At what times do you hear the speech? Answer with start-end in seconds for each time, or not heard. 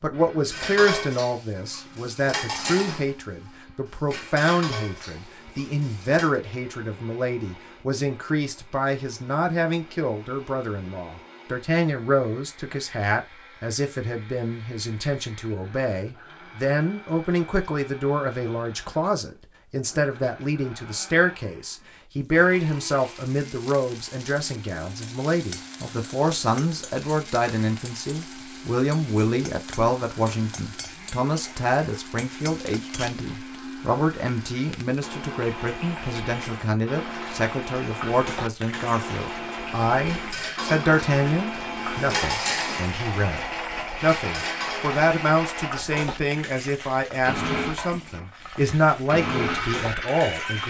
0.0-43.4, 44.0-50.6.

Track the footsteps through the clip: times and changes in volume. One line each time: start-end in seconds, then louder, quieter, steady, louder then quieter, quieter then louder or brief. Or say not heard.
not heard.